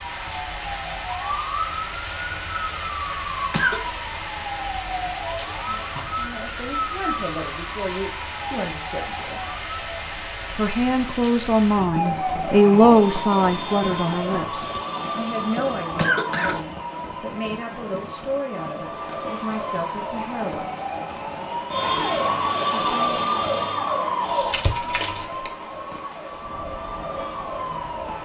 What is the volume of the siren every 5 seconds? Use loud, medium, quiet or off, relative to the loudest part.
medium, medium, medium, medium, loud, medium.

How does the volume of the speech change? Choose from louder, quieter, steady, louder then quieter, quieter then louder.
louder then quieter.